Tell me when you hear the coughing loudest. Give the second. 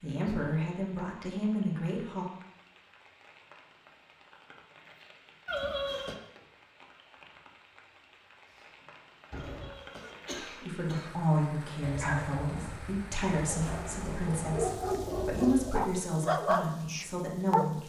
6 s.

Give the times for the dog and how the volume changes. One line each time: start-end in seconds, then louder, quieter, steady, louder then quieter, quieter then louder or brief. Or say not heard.
11.8-17.7 louder.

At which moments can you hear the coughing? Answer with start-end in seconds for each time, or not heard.
5.5-6.2, 9.3-11.2.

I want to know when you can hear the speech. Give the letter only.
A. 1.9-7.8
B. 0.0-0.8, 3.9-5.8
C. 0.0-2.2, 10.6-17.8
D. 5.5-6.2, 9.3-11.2
C.